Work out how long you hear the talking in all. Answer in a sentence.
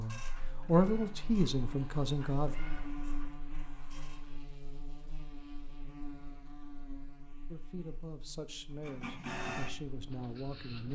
You can hear the talking for 6 seconds altogether.